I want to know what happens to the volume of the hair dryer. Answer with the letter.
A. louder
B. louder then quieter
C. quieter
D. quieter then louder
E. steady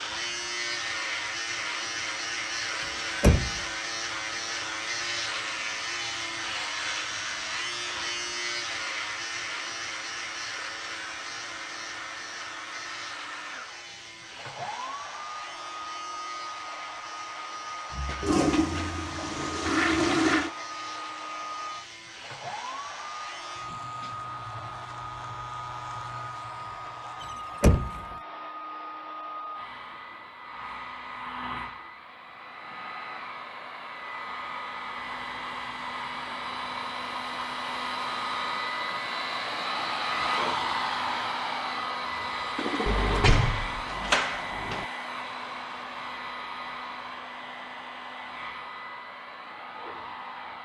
A.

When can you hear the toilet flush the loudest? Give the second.
20 s.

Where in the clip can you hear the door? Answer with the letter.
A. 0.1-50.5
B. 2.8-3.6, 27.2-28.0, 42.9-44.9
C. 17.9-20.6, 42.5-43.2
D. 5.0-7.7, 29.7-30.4
B.